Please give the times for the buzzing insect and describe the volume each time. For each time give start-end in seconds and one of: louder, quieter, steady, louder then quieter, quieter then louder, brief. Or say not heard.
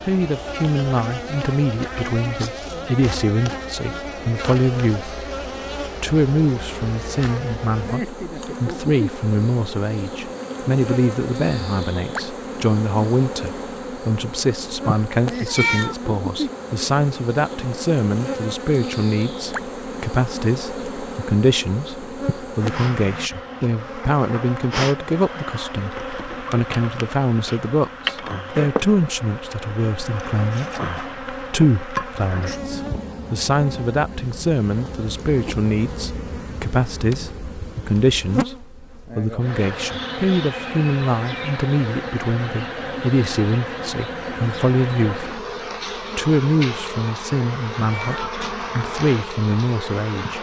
0.0-50.3 steady.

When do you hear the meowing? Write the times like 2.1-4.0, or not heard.
15.3-15.9, 47.9-48.4.